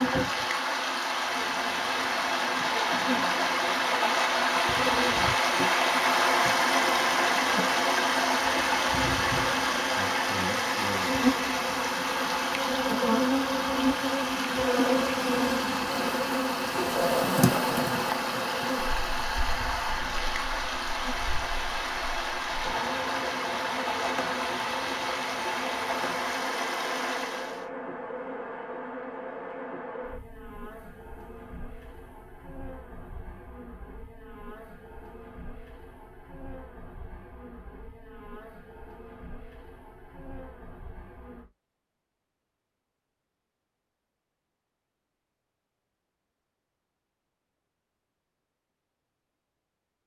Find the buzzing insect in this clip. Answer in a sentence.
You can hear the buzzing insect from 0.0 to 41.5 s.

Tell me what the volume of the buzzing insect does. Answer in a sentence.
The volume of the buzzing insect goes up, then down.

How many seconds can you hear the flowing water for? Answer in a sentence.
The flowing water can be heard for 28 seconds in total.